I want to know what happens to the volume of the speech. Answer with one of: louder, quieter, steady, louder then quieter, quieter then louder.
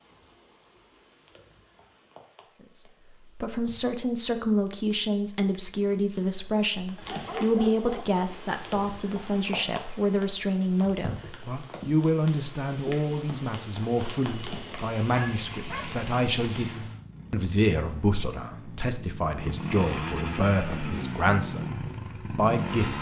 steady.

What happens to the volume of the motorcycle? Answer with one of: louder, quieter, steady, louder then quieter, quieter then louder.
louder.